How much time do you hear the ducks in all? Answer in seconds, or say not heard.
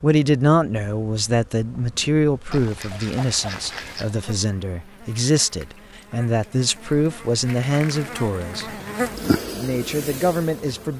2 s.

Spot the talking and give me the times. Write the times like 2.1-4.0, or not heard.
0.0-8.7, 9.6-10.9.